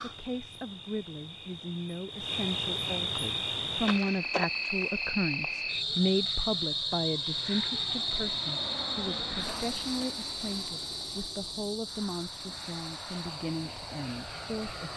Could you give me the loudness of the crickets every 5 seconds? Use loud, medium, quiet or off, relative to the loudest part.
loud, loud, medium.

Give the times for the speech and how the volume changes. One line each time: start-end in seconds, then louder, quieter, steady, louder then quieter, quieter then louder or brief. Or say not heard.
0.0-14.9 louder then quieter.